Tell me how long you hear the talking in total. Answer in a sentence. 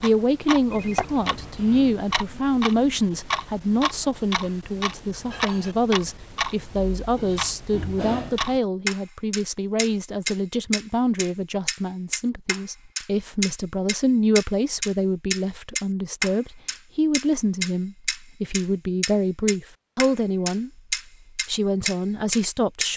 The talking can be heard for 23 seconds in total.